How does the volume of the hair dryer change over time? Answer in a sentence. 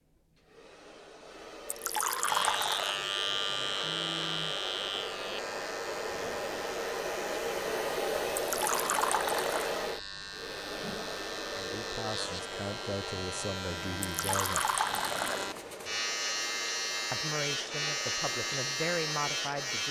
The loudness of the hair dryer goes up, then down.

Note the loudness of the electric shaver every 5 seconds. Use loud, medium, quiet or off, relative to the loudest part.
loud, medium, medium, loud.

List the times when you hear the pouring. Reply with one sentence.
You can hear the pouring from 1.6 to 3.0 s, from 8.3 to 9.8 s and from 14.1 to 15.6 s.